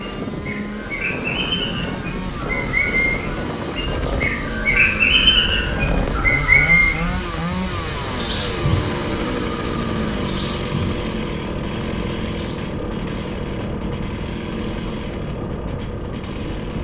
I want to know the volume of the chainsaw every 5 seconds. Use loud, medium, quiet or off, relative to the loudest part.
medium, loud, loud, medium.